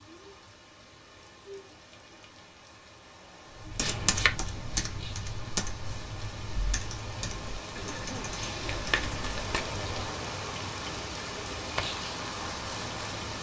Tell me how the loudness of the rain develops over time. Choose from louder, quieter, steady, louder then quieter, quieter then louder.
louder.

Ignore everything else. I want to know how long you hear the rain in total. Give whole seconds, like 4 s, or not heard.
13 s.